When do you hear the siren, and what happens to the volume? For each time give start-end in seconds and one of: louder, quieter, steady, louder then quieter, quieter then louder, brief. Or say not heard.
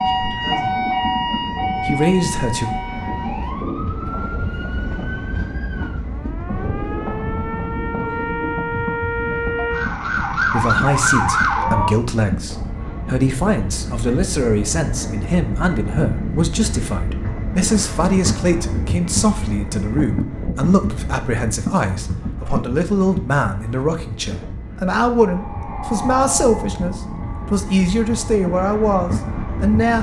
0.0-11.9 quieter then louder
25.2-29.9 quieter.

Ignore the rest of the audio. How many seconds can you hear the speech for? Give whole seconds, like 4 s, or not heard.
21 s.